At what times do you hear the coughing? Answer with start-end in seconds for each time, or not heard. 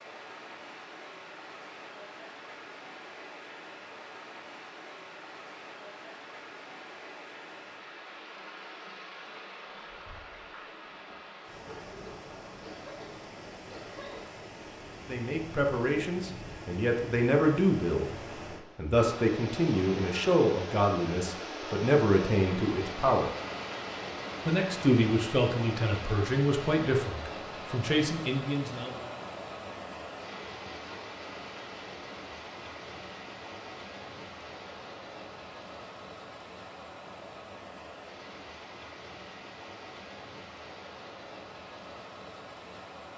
11.7-14.2.